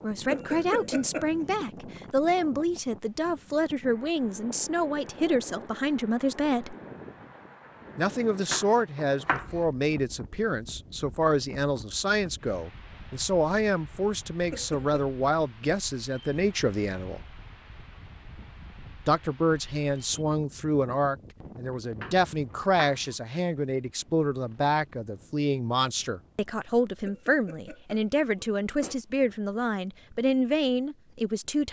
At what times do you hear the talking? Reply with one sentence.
The talking can be heard from 0.0 to 6.8 s, from 8.0 to 17.2 s and from 19.1 to 31.6 s.